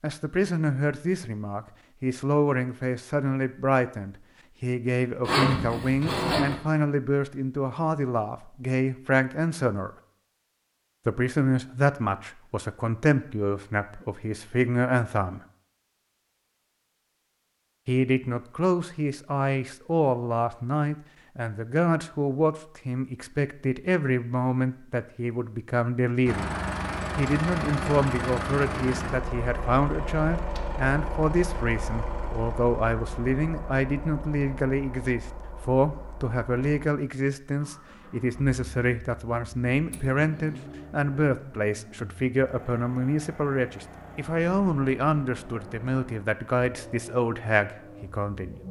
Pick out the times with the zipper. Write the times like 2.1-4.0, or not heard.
5.2-6.5, 39.9-40.6.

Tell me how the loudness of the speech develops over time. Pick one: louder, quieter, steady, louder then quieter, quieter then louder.
steady.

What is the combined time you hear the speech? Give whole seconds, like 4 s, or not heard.
45 s.